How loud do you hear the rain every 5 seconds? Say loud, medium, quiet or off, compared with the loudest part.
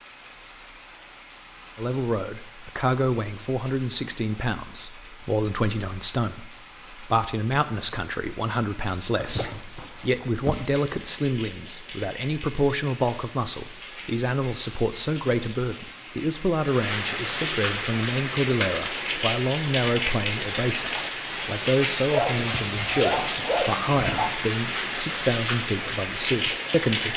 quiet, quiet, quiet, loud, loud, loud.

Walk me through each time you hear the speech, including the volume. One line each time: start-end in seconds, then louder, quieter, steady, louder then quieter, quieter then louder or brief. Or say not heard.
1.8-27.1 steady.